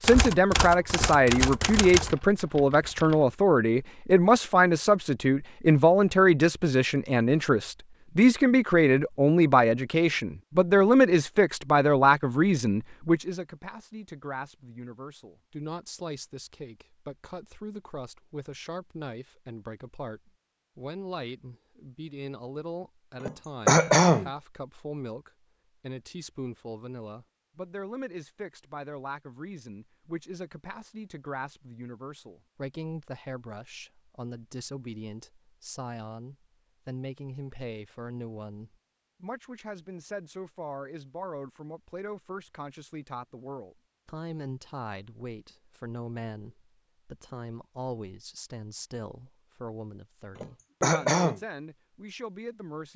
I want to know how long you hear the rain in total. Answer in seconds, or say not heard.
not heard.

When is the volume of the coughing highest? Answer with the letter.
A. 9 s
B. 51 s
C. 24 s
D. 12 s
C.